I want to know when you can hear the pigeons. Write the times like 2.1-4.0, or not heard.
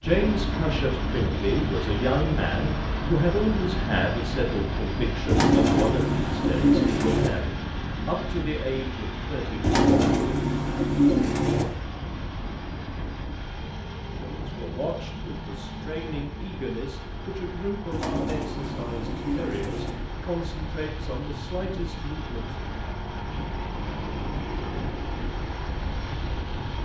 5.2-7.3, 9.6-11.7, 17.9-19.9.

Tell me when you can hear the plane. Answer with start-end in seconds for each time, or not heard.
0.0-26.8.